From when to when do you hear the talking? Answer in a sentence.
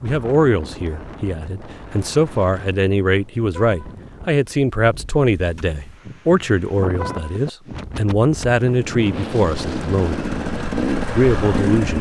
The talking can be heard from 0.0 to 10.2 s and from 11.2 to 11.9 s.